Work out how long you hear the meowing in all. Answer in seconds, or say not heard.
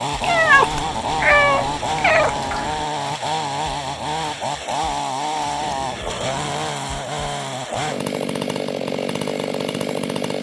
4 s.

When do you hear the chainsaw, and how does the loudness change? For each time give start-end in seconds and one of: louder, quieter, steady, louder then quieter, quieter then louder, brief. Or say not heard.
0.0-10.3 steady.